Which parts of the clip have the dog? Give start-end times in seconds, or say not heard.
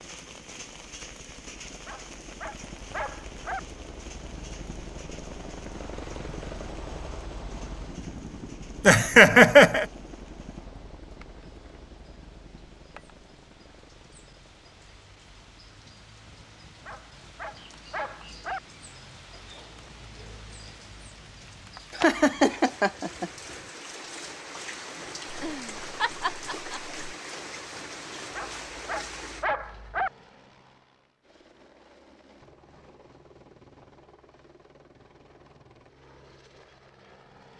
1.9-3.6, 16.9-18.6, 28.4-30.1.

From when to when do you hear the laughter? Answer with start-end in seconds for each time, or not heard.
8.8-9.8, 21.9-23.3, 25.3-26.9.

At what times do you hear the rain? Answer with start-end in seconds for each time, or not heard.
0.0-29.4.